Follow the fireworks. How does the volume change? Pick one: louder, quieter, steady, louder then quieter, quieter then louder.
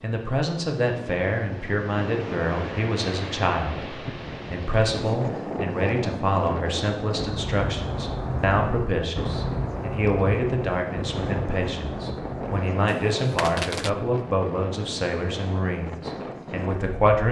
quieter.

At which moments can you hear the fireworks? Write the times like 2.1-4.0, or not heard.
7.2-13.9.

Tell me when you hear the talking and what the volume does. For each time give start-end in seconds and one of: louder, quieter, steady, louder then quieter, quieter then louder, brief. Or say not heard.
0.0-17.2 steady.